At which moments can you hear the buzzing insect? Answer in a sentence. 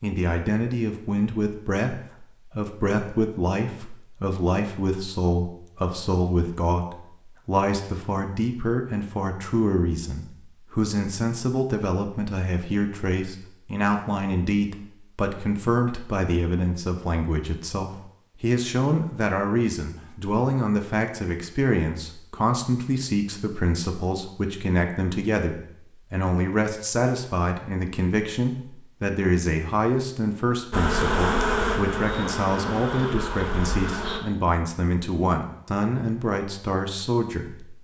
The buzzing insect can be heard from 30.7 to 34.2 s.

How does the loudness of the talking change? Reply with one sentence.
The loudness of the talking stays about the same.